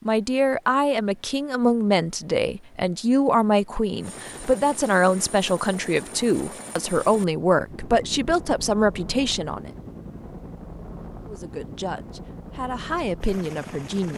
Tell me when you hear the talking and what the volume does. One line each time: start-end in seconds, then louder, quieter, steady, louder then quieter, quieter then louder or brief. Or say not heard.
0.0-9.7 steady
11.2-14.1 brief.